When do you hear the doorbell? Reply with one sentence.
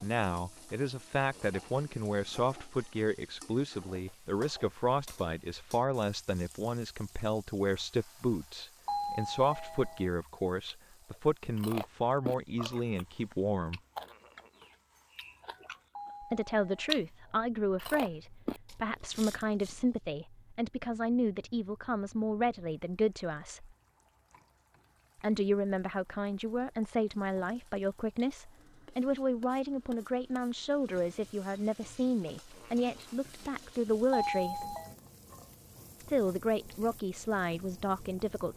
You can hear the doorbell from 8.8 to 10.1 s, from 15.9 to 16.9 s and from 34.1 to 34.9 s.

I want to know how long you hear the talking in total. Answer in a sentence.
The talking can be heard for 33 seconds in total.